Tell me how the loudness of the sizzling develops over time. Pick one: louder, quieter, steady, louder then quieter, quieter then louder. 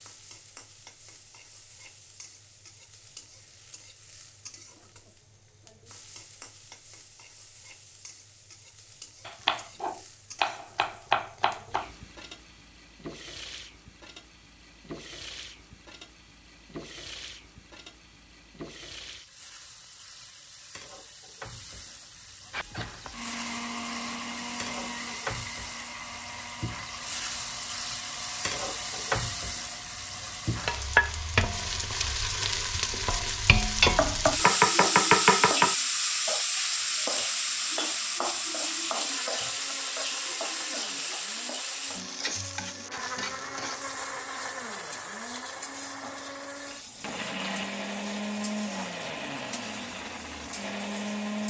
louder then quieter.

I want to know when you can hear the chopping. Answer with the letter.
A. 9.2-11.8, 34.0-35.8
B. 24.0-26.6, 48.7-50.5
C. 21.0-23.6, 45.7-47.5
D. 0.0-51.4
A.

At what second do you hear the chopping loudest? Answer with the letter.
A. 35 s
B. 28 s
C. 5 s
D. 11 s
A.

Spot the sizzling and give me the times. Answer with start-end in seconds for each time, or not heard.
0.0-51.4.